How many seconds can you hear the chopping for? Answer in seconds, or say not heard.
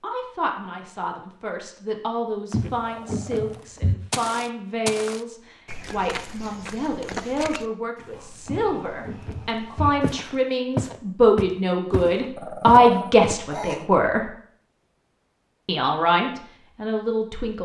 not heard.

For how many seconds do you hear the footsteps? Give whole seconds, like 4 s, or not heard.
11 s.